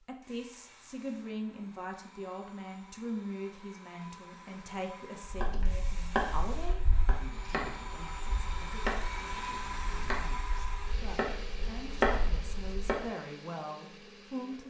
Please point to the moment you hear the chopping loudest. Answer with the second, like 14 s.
12 s.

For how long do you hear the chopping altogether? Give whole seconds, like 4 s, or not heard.
8 s.